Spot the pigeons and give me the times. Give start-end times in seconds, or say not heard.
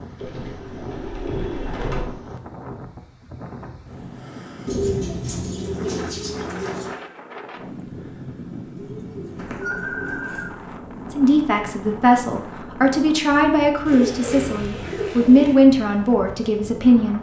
0.1-2.0, 4.7-7.0, 8.8-10.4, 13.8-15.6.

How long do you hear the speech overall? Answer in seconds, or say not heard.
6 s.